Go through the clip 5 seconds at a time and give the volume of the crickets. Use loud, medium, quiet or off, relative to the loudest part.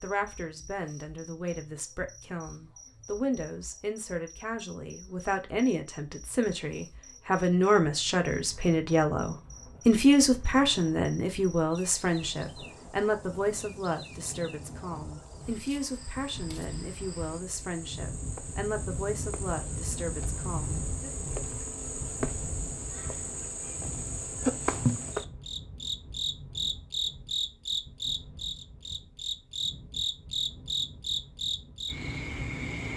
quiet, quiet, quiet, quiet, loud, loud, loud.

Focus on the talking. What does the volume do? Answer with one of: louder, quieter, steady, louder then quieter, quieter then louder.
louder then quieter.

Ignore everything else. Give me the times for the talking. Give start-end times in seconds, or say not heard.
0.0-21.1.